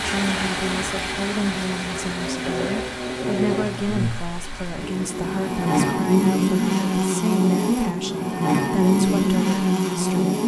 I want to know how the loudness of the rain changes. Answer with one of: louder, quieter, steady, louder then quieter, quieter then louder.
quieter.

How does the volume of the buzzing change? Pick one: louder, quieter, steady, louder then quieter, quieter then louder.
louder.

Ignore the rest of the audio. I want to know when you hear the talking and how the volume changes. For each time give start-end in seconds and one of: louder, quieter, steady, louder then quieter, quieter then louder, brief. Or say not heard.
0.0-10.3 steady.